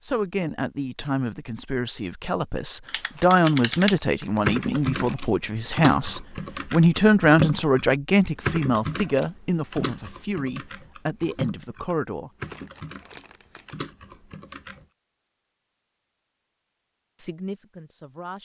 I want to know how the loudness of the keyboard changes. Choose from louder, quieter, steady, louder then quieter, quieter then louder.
quieter.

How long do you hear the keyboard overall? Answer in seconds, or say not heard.
12 s.